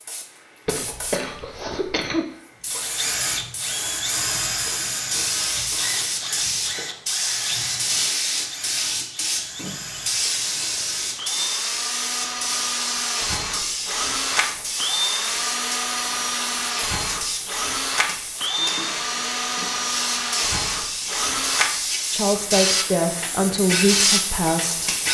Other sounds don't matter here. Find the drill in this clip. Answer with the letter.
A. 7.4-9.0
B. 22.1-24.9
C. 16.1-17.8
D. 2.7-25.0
D.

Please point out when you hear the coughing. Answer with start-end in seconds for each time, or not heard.
0.7-2.2.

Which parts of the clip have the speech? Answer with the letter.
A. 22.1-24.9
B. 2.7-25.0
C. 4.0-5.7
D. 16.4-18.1
A.